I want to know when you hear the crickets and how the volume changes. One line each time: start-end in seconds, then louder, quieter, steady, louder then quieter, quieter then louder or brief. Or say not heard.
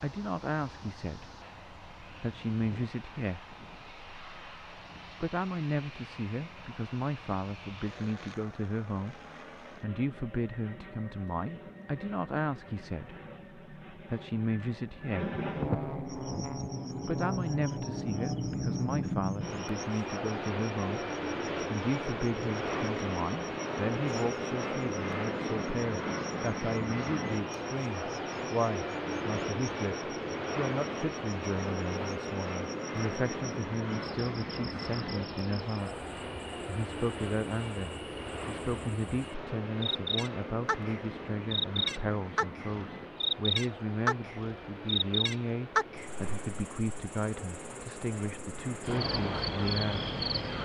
16.1-50.6 louder.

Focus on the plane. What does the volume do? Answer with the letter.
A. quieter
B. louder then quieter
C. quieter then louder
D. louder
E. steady
B.